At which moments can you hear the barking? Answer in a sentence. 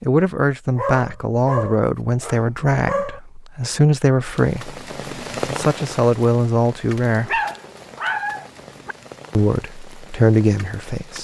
You can hear the barking from 0.8 to 3.2 s and from 7.0 to 8.9 s.